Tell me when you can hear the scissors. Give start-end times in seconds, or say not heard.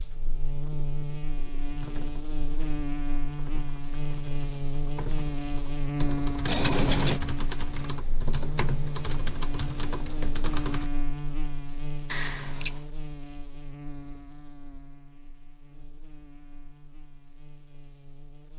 6.5-7.2, 12.1-12.8.